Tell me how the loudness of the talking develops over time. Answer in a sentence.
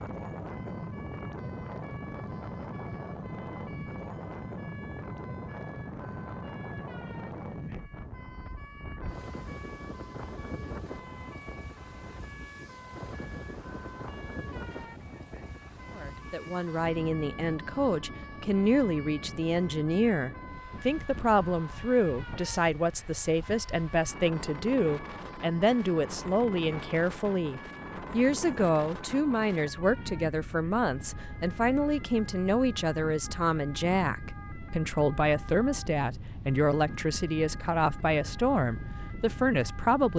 The volume of the talking stays about the same.